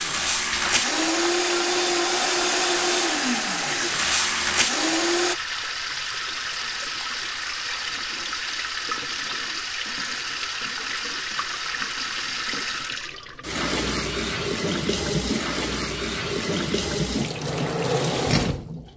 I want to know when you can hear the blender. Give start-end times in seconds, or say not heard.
0.0-5.3.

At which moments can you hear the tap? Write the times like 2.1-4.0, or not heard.
0.3-18.9.